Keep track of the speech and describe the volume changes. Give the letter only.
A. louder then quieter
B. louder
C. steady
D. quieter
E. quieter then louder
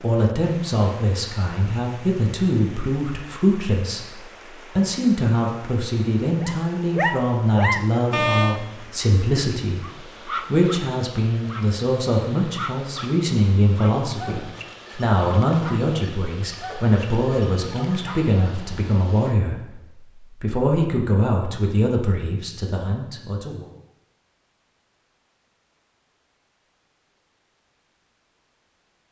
C.